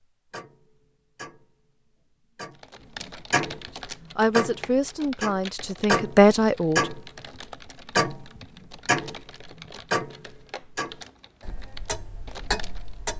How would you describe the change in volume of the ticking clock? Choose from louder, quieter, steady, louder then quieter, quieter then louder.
louder then quieter.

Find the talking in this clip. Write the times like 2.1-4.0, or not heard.
4.2-6.9.